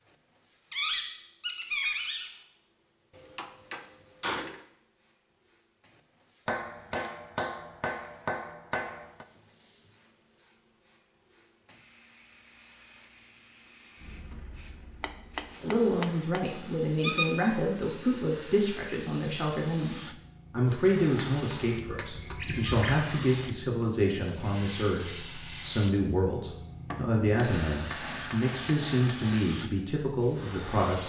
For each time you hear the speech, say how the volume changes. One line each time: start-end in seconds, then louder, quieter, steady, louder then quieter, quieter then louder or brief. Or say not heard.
15.6-31.0 steady.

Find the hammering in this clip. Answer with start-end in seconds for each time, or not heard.
3.1-4.7, 6.5-9.2, 15.0-16.6, 20.7-22.4, 26.9-29.4.